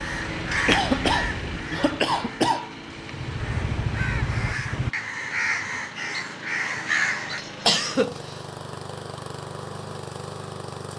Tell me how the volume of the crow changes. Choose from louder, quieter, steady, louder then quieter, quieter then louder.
quieter then louder.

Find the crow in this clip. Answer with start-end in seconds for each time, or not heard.
0.0-7.5.